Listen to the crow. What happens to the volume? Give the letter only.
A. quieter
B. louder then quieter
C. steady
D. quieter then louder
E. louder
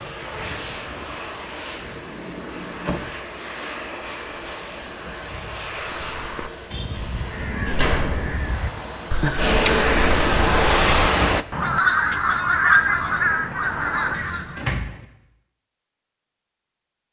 B.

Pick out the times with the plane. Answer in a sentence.
You can hear the plane from 0.0 to 11.4 s.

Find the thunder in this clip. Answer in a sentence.
You can't hear the thunder here.